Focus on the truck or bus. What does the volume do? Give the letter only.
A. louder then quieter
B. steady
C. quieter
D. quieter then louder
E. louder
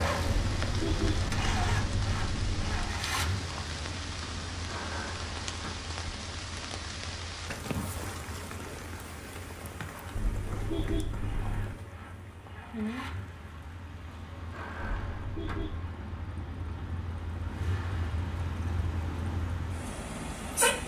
D.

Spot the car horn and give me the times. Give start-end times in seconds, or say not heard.
0.2-3.0, 10.2-11.8, 14.8-15.9.